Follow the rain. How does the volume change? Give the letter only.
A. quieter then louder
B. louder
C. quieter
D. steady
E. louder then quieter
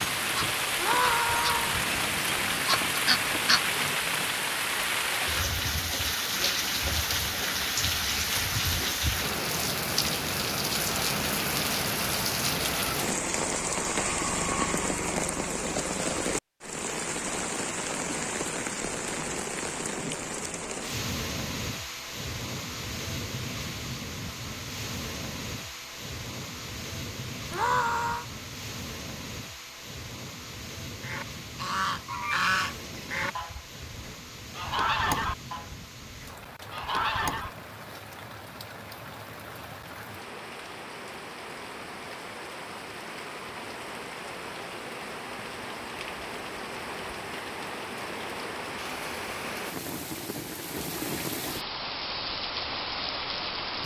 A.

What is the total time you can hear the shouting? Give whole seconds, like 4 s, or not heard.
2 s.